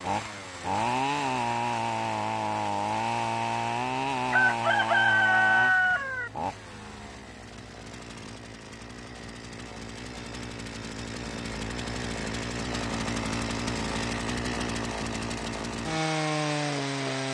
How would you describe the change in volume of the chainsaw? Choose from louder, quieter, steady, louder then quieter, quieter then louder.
quieter then louder.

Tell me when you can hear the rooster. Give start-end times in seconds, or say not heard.
4.3-6.3.